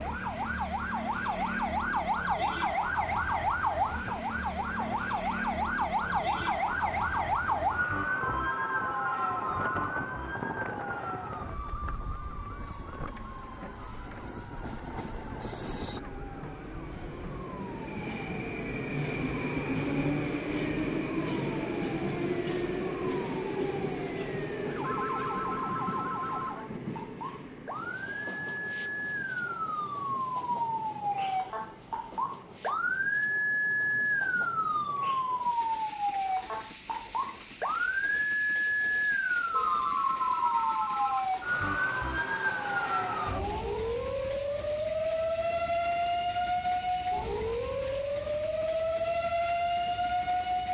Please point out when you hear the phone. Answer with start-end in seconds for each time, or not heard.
8.2-9.7, 24.8-26.6, 39.5-41.3.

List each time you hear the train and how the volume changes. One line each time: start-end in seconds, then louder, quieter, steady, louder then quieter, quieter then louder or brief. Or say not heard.
0.0-50.6 louder then quieter.